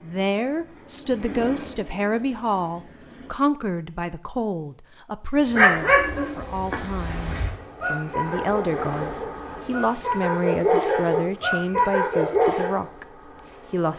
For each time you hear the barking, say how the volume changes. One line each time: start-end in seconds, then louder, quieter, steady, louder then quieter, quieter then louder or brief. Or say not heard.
5.5-12.8 quieter then louder.